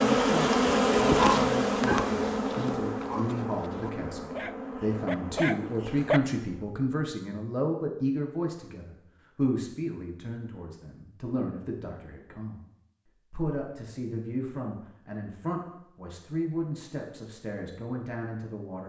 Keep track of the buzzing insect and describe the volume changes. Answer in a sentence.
The volume of the buzzing insect goes down.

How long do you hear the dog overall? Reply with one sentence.
The dog can be heard for 5 seconds in total.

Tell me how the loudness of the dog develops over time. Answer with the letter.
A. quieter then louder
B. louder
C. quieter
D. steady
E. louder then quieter
A.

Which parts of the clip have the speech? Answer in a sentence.
You can hear the speech from 0.0 to 12.6 s and from 13.3 to 18.8 s.